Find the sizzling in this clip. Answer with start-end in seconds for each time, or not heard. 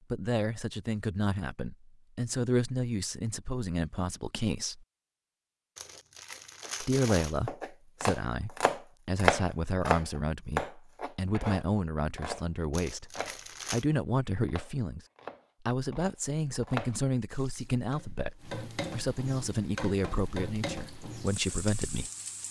17.2-22.4.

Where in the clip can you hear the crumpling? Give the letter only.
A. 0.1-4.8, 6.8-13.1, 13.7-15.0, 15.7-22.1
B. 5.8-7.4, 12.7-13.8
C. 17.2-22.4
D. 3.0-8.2
B.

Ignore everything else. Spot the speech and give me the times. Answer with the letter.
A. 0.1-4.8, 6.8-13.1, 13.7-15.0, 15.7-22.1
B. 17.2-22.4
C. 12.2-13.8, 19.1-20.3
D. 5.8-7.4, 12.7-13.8
A.